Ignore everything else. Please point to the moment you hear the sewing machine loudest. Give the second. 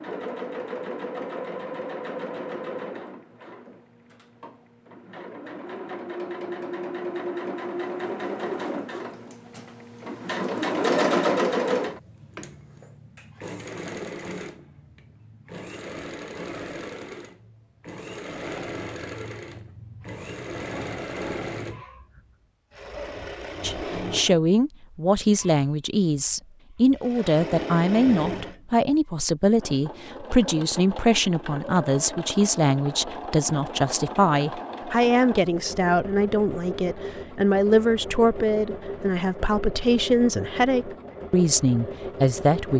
11 s.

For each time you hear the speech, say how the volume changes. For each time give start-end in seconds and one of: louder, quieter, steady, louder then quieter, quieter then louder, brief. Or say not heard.
23.6-42.7 steady.